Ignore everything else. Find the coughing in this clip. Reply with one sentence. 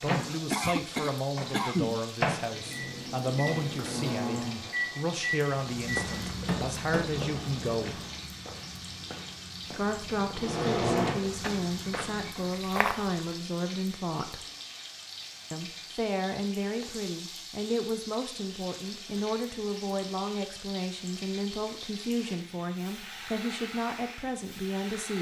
The coughing can be heard from 0.5 to 2.0 s.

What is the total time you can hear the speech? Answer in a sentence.
The speech can be heard for 22 seconds in total.